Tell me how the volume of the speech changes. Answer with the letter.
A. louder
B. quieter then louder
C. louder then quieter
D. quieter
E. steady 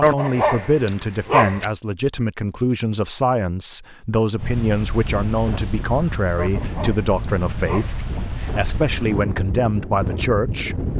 E.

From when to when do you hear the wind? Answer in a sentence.
You can hear the wind from 4.3 to 10.9 s.